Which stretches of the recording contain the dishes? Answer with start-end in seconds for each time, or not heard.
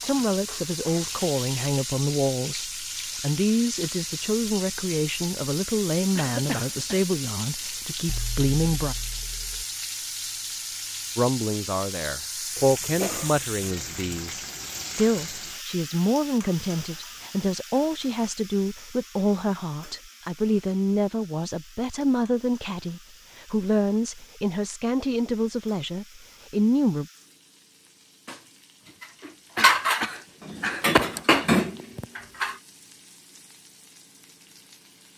0.0-1.2, 29.0-32.5.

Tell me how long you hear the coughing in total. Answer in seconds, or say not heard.
4 s.